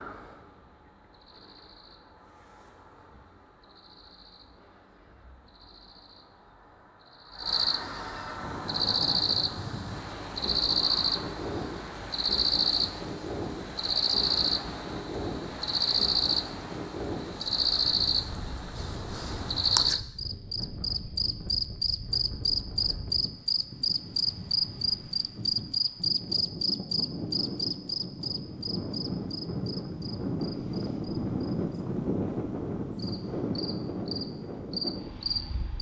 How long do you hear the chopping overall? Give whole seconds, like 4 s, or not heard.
not heard.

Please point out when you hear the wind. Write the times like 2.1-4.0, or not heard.
8.3-35.7.